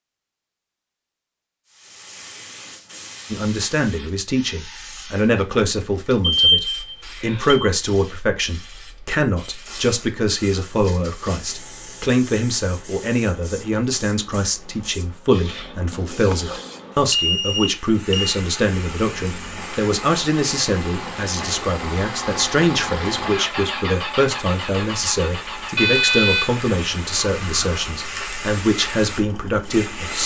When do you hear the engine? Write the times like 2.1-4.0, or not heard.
19.1-30.2.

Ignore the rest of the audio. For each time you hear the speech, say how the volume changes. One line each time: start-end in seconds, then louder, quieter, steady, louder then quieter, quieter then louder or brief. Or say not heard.
3.3-30.2 steady.